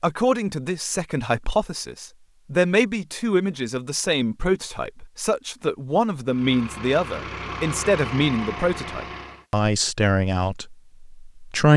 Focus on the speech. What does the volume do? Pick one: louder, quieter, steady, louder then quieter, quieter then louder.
steady.